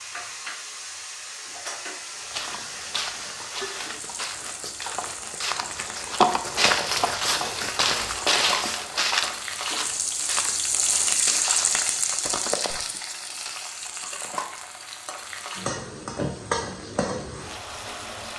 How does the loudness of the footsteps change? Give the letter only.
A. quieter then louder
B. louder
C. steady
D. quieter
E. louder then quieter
E.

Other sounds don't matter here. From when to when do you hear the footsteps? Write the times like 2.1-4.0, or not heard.
2.1-12.8.